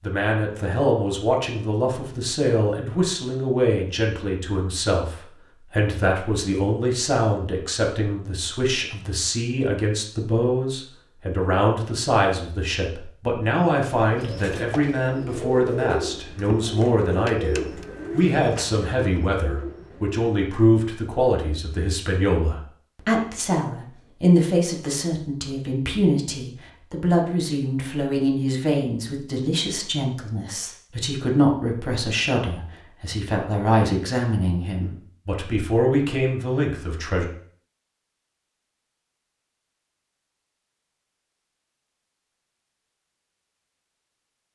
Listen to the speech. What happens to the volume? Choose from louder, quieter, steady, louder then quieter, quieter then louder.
steady.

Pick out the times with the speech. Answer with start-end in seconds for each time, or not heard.
0.0-37.2.